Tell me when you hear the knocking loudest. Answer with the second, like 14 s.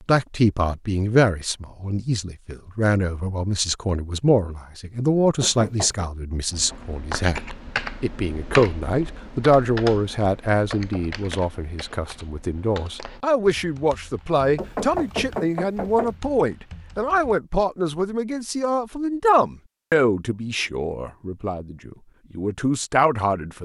15 s.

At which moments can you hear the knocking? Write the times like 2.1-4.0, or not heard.
5.4-6.1, 14.6-16.1.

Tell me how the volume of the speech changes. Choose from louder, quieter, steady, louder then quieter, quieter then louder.
steady.